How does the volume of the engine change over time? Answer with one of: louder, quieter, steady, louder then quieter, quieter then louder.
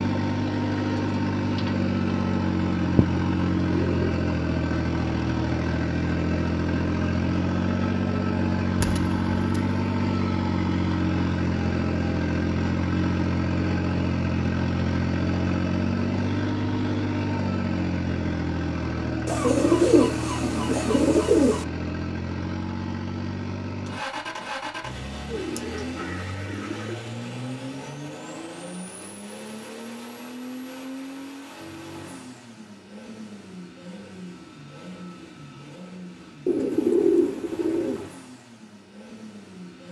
quieter.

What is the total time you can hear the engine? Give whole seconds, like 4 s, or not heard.
40 s.